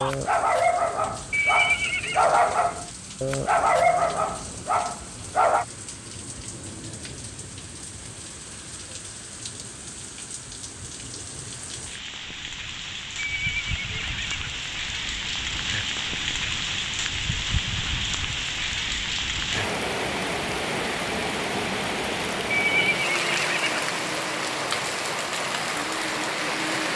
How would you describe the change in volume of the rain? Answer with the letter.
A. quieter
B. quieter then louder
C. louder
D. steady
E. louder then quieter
C.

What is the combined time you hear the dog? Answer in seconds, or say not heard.
6 s.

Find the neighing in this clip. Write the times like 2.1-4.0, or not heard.
1.3-2.2, 13.2-14.5, 22.5-23.9.